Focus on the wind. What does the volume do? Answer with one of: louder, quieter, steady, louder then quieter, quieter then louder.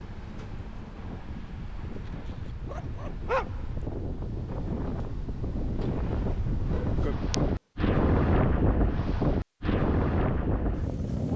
louder.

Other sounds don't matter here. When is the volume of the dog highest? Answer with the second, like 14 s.
3 s.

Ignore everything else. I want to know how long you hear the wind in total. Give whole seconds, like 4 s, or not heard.
11 s.